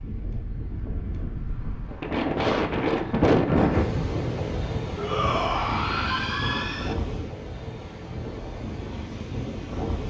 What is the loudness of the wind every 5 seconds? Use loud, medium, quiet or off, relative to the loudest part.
loud, medium.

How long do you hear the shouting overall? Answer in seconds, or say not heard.
2 s.